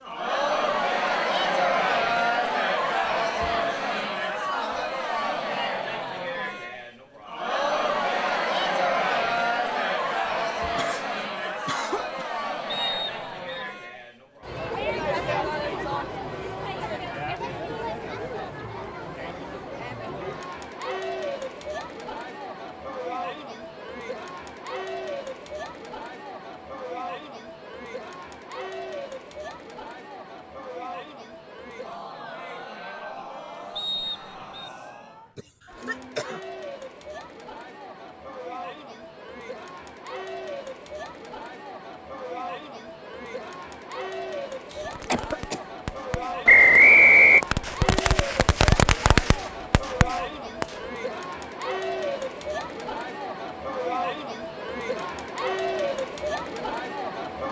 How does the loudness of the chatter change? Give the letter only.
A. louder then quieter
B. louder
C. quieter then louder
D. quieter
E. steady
C.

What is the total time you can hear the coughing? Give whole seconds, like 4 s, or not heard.
4 s.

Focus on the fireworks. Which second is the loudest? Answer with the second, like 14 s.
49 s.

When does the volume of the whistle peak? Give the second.
47 s.